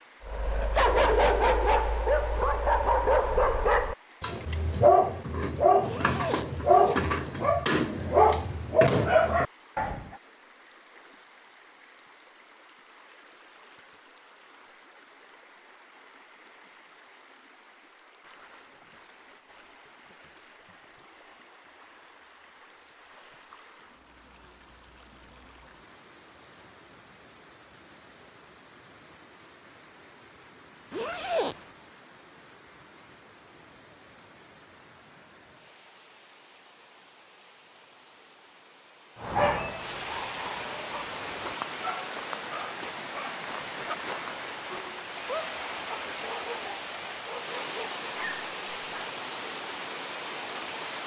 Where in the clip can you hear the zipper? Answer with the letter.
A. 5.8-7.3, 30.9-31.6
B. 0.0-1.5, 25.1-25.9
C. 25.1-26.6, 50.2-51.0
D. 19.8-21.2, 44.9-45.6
A.